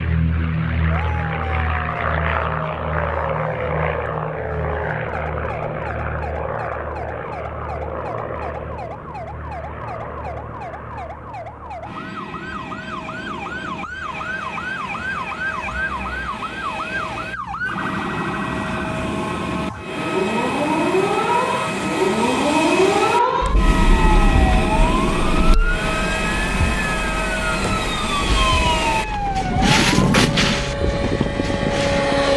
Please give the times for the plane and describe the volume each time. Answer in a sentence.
You can hear the plane from 0.0 to 32.3 s, getting quieter then louder.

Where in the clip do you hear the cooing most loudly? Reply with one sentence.
The loudest moment of the cooing is at 30 seconds.